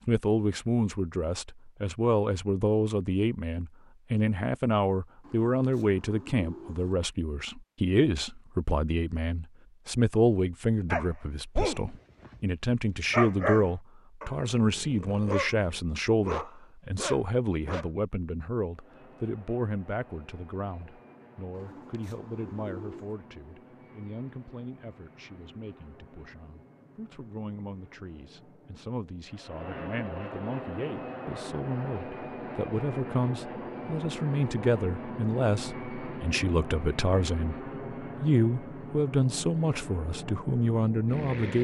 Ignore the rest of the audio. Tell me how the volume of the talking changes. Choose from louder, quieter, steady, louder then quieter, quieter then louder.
quieter then louder.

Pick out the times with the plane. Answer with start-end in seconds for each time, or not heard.
18.7-41.5.